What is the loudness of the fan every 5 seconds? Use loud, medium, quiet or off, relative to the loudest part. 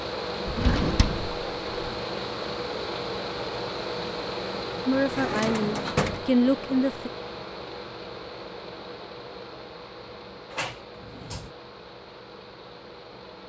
loud, medium, quiet.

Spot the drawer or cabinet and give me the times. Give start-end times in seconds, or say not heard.
0.5-1.9, 5.0-6.3, 10.5-11.5.